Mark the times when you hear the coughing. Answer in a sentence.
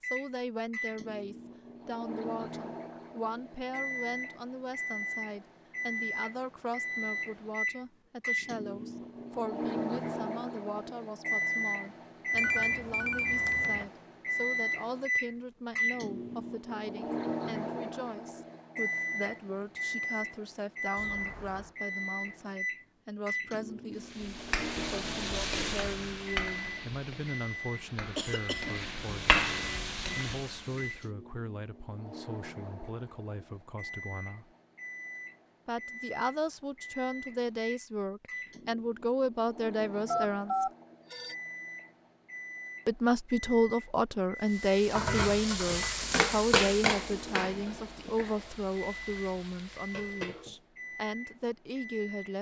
The coughing can be heard from 28.1 to 28.8 s.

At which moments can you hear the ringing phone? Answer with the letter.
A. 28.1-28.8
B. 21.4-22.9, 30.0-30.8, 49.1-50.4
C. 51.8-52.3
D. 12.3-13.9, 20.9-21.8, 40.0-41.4
D.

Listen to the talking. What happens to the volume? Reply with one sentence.
The volume of the talking goes up.